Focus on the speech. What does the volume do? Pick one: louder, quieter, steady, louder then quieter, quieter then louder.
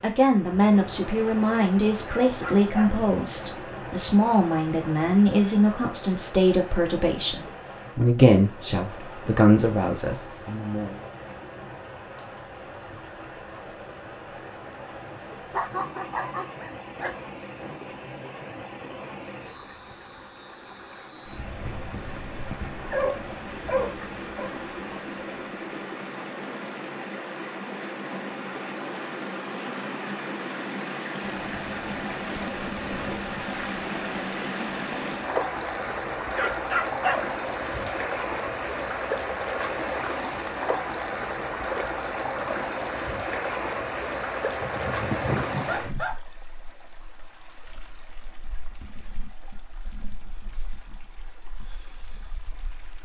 steady.